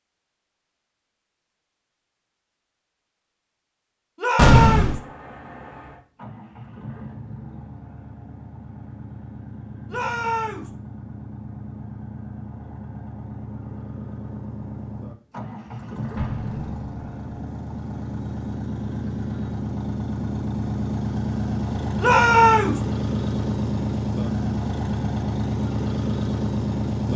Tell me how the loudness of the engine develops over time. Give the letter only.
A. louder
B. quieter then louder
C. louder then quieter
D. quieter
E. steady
A.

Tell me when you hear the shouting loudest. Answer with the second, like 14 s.
22 s.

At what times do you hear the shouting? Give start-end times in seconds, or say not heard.
4.2-5.0, 9.8-10.7, 21.9-22.8.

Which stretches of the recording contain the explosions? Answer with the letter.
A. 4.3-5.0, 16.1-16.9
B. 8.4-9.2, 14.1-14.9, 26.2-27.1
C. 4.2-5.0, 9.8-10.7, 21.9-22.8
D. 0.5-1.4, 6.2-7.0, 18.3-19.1
A.